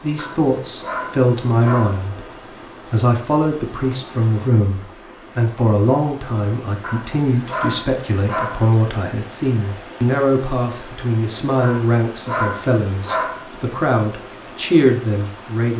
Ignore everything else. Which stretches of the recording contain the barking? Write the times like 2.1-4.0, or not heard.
0.1-2.0, 6.8-8.7, 11.6-13.4.